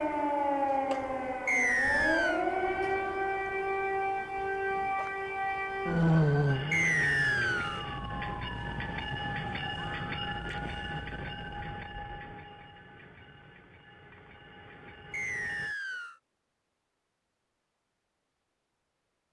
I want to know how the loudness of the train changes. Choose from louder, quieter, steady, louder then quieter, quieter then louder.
quieter.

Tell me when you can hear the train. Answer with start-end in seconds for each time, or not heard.
6.5-15.8.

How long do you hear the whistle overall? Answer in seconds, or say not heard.
3 s.